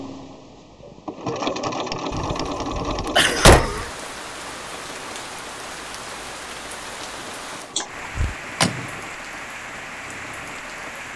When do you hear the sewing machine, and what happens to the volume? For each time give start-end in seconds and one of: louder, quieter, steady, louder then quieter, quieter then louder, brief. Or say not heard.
0.0-11.1 quieter.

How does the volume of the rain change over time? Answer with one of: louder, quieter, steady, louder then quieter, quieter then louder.
steady.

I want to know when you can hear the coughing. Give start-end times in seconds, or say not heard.
3.1-3.9, 7.8-8.3.